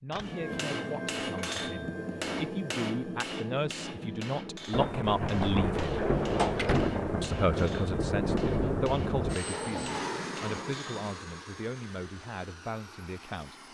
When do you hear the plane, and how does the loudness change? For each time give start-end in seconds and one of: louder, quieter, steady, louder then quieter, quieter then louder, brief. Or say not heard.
9.2-13.6 quieter.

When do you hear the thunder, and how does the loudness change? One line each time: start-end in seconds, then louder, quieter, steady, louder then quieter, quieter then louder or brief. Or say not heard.
4.7-9.3 steady.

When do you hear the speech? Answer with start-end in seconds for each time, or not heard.
0.0-6.0, 7.2-13.6.